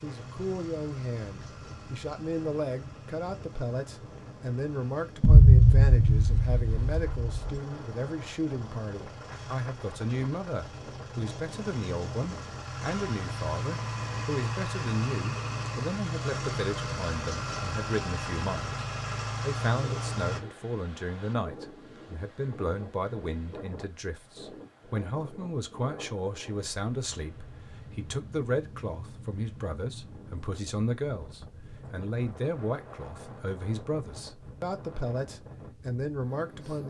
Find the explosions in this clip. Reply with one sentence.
You can hear the explosions from 5.2 to 7.5 s.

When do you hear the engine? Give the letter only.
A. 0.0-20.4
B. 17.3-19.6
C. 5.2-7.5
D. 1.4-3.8
A.